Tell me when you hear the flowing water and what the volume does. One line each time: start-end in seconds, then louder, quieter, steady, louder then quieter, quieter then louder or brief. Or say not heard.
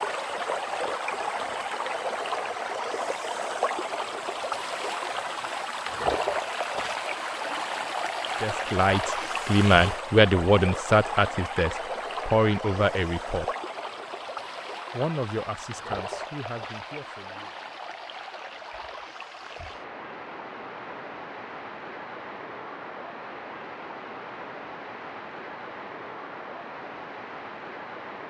0.0-28.2 quieter.